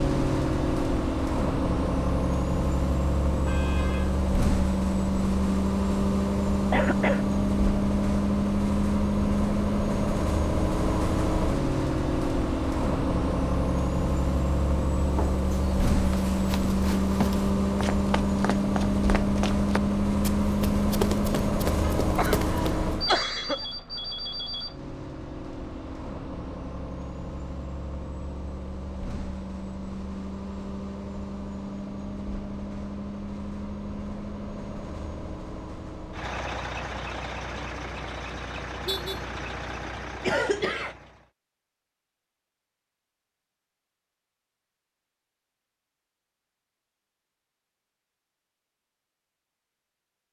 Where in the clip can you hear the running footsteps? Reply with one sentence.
You can hear the running footsteps from 15.2 to 22.8 s.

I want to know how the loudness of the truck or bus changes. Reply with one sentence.
The volume of the truck or bus goes down.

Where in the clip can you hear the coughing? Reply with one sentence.
The coughing can be heard from 6.7 to 7.2 s, from 21.9 to 23.6 s and from 40.2 to 41.0 s.